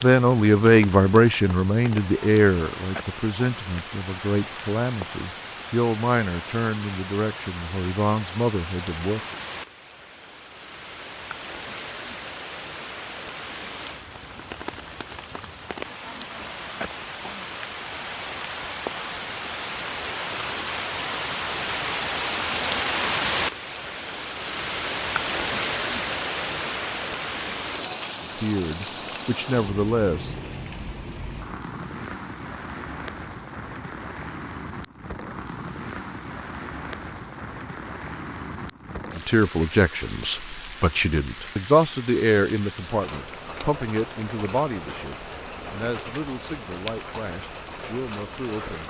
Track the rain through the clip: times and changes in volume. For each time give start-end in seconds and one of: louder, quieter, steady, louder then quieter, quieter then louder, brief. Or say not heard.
0.0-48.8 louder then quieter.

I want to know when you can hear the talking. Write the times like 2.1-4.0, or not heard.
0.0-9.3, 28.2-30.4, 39.1-48.8.